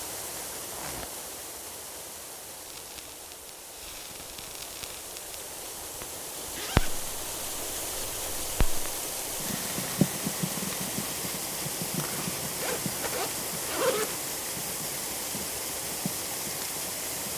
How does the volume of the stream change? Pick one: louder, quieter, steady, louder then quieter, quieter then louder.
louder.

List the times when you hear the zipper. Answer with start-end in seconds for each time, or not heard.
0.3-1.1, 6.5-7.1, 11.9-14.2.